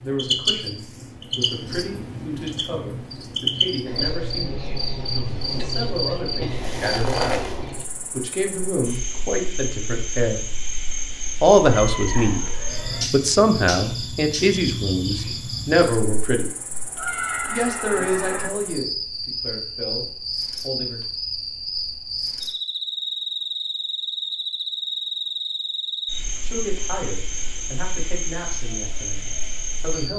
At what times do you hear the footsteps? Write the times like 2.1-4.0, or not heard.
not heard.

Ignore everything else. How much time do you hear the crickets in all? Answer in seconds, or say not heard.
30 s.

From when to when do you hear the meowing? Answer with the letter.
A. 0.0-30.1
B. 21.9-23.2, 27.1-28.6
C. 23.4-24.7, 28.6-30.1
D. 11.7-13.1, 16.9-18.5
D.